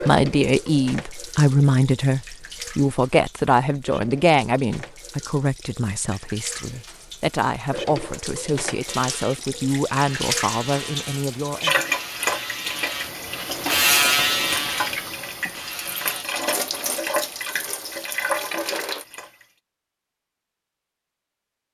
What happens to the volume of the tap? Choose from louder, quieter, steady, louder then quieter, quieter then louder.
louder.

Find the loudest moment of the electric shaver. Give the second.
14 s.